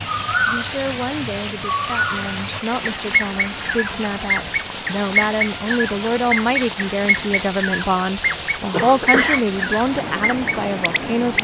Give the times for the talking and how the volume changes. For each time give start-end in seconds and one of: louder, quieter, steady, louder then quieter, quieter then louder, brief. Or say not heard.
0.4-11.3 louder.